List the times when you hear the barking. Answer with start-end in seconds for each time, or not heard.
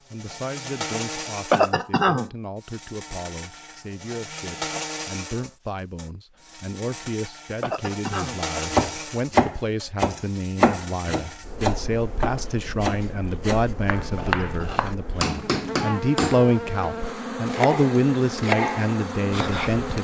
not heard.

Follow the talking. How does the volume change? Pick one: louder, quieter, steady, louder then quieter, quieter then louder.
louder.